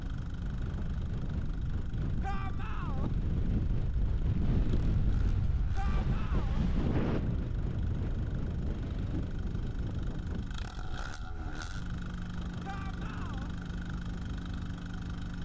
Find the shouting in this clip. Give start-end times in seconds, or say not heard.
2.2-3.1, 5.8-6.7, 12.6-13.5.